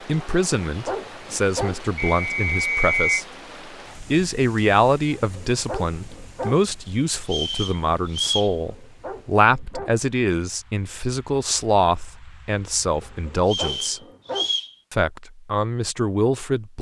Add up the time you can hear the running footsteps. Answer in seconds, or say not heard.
not heard.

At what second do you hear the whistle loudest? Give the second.
3 s.